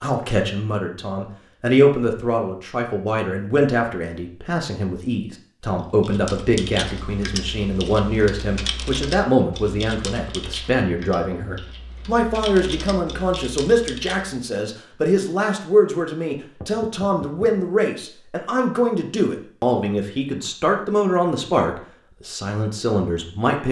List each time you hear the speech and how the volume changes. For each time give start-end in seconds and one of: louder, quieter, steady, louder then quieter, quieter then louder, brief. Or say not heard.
0.0-23.6 steady.